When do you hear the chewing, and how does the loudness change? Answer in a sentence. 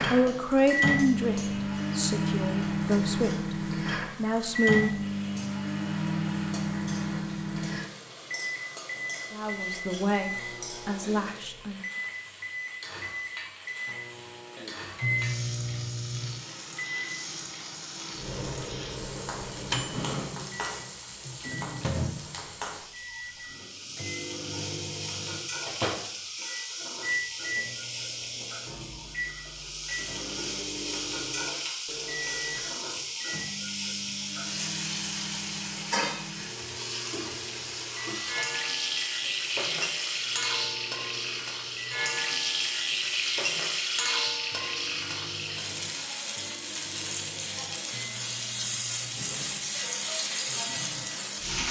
You can't hear the chewing here.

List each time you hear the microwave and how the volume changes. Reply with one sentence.
The microwave can be heard from 0.0 to 51.4 s, getting quieter.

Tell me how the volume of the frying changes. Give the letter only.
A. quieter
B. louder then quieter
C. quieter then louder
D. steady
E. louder
E.